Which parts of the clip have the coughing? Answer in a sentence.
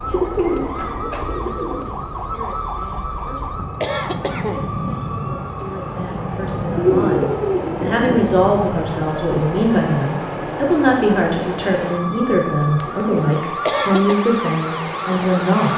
You can hear the coughing from 3.8 to 4.7 s and from 13.7 to 14.2 s.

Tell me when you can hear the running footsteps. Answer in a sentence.
The running footsteps can't be heard in this clip.